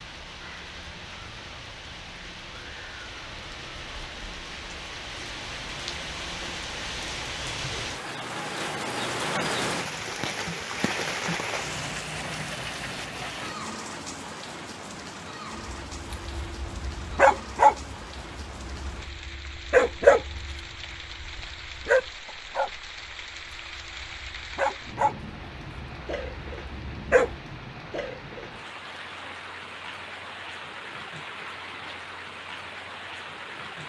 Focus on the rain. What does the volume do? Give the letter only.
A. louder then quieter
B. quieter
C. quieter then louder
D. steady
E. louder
A.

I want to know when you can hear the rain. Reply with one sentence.
The rain can be heard from 0.0 to 33.8 s.